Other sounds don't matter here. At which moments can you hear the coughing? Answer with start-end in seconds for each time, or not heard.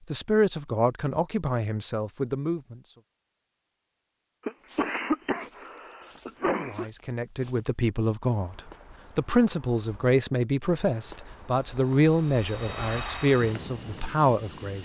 4.5-6.8.